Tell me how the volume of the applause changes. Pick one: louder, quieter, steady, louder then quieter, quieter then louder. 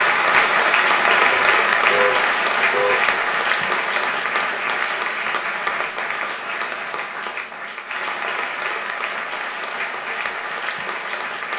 quieter.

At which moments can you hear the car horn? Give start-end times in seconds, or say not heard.
1.3-3.0.